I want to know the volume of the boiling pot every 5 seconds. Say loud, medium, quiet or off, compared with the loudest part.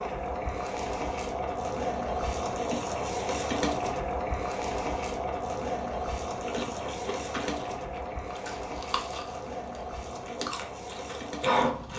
loud, loud, medium.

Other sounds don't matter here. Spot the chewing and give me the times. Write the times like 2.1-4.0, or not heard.
6.3-11.9.